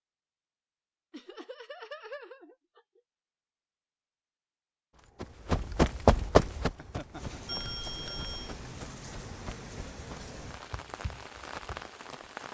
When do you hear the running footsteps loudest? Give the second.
6 s.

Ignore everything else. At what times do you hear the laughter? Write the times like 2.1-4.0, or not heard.
1.1-3.0, 6.8-7.6.